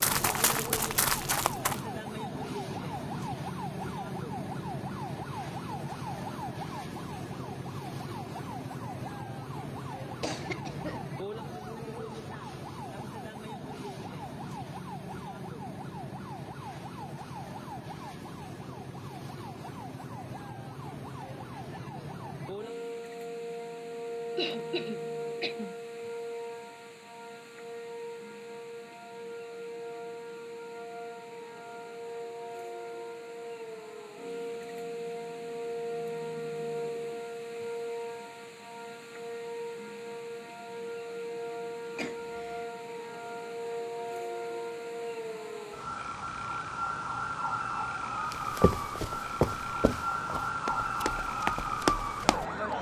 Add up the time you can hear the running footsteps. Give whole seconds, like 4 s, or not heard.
6 s.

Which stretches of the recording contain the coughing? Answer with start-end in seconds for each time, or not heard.
10.2-11.1, 24.4-25.8, 42.0-42.6.